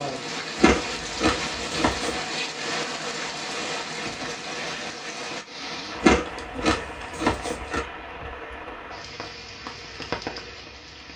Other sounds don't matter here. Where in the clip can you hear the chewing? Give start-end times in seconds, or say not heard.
0.6-2.1, 6.0-7.8.